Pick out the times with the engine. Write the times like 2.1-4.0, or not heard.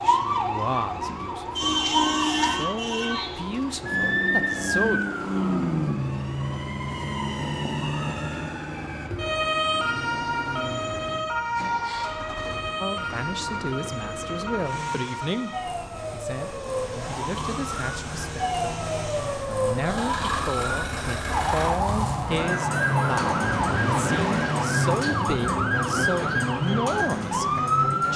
0.0-28.1.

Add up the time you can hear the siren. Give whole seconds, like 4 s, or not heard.
28 s.